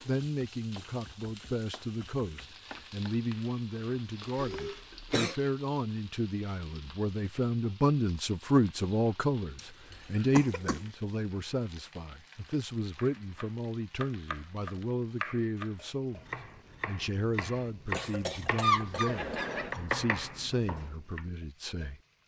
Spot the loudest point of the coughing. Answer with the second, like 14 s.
19 s.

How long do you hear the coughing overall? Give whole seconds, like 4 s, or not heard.
4 s.